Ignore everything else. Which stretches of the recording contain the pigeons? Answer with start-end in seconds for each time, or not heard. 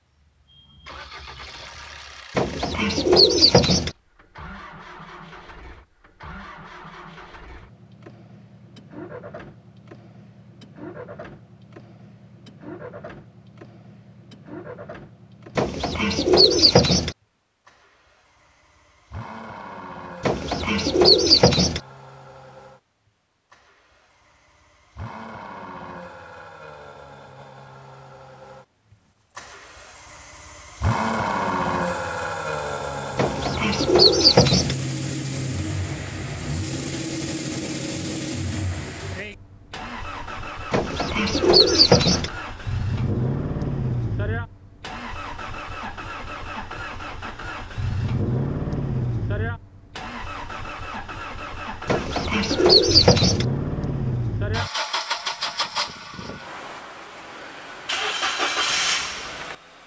2.4-3.9, 15.6-17.1, 20.2-21.8, 33.1-34.8, 40.7-42.3, 51.9-53.5.